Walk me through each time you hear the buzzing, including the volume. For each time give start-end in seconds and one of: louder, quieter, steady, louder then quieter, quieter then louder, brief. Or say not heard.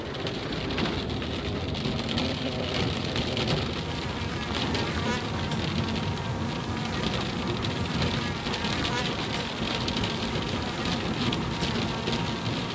0.1-12.7 steady.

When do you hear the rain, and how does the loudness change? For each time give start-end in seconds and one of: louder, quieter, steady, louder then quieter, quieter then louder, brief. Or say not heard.
0.0-12.7 steady.